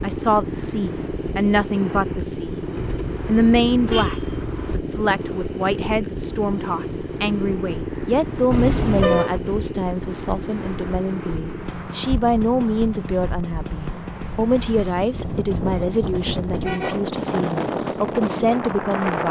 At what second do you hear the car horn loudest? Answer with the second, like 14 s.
9 s.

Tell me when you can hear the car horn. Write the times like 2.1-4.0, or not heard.
2.8-4.8, 8.5-9.3, 16.6-17.1.